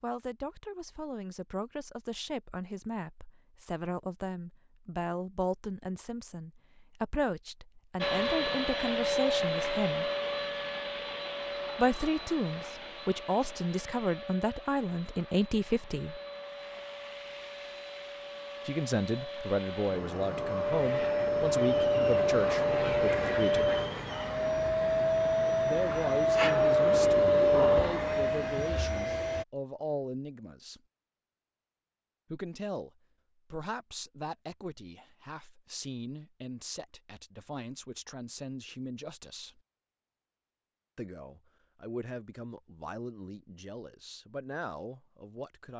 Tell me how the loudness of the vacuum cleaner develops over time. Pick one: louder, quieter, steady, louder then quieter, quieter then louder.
quieter then louder.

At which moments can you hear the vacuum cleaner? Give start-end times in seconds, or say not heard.
8.0-29.4.